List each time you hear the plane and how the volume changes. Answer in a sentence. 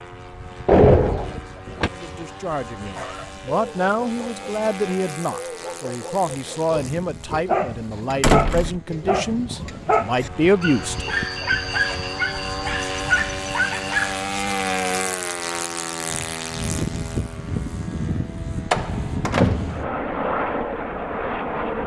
You can hear the plane from 0.0 to 21.8 s, getting louder.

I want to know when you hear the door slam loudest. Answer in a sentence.
The loudest moment of the door slam is at 1 second.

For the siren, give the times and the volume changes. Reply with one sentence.
You can't hear the siren here.